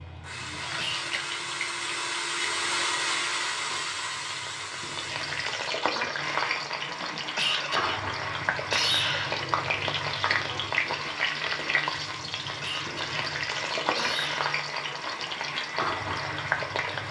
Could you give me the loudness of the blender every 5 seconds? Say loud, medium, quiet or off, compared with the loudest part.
loud, medium, medium, medium.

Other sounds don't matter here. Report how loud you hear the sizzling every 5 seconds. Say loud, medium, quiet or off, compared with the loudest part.
medium, loud, loud, loud.